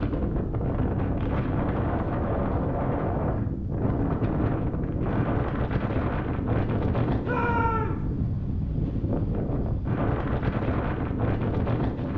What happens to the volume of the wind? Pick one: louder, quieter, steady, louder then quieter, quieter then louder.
steady.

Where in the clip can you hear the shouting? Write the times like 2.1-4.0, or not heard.
7.2-8.1.